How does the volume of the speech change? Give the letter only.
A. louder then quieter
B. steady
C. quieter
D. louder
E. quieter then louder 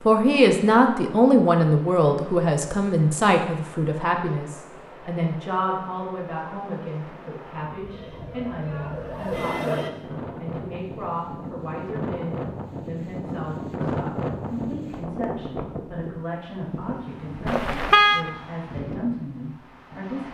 C.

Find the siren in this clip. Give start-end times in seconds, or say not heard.
7.7-9.9.